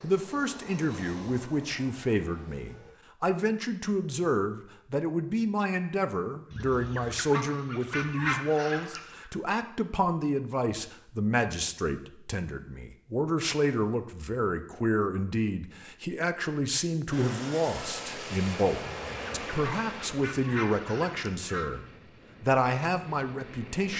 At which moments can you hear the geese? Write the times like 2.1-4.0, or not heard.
6.5-9.2, 18.8-21.7.